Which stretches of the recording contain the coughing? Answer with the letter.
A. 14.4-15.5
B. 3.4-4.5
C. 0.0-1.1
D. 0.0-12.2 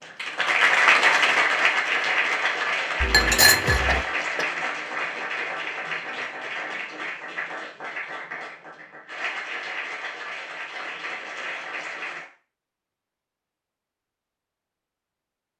B.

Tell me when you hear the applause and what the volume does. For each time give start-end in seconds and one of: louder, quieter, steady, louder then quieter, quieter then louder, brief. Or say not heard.
0.0-12.2 quieter.